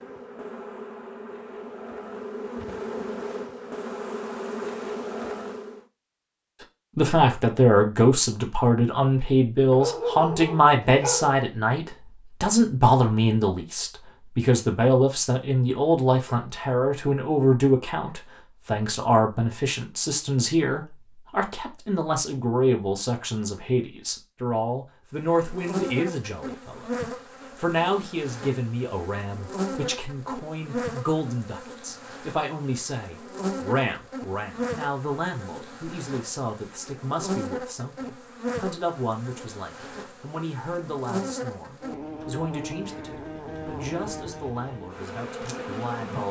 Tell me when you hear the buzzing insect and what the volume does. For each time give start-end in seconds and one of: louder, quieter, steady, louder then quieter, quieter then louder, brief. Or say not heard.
0.0-5.8 louder
25.2-46.2 steady.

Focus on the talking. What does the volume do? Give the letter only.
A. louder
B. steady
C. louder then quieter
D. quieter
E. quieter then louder
D.